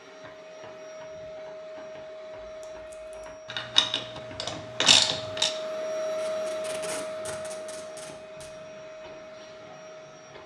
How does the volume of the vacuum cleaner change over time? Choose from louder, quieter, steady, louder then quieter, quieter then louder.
louder then quieter.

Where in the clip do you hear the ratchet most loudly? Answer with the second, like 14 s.
5 s.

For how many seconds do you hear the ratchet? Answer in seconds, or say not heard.
2 s.